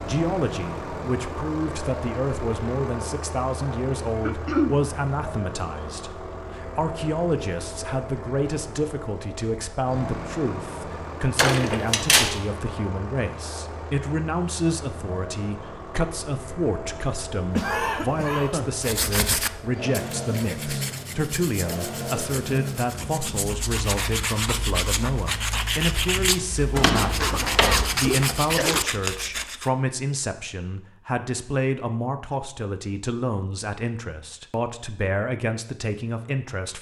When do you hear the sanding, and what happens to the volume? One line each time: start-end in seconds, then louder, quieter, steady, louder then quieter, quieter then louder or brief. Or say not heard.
18.8-29.7 quieter then louder.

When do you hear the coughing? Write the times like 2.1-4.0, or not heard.
4.2-4.8, 17.6-18.8, 27.2-28.9.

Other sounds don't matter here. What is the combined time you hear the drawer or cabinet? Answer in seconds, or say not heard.
3 s.